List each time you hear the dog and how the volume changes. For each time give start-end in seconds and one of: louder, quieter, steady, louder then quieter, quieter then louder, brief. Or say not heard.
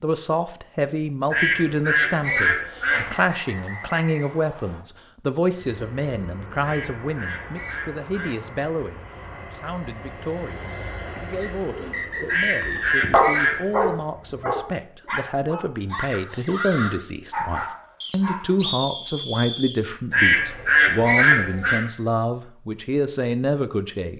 11.2-18.6 louder then quieter.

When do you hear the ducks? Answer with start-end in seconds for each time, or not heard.
1.3-3.1, 6.6-8.4, 12.2-13.8, 20.1-21.8.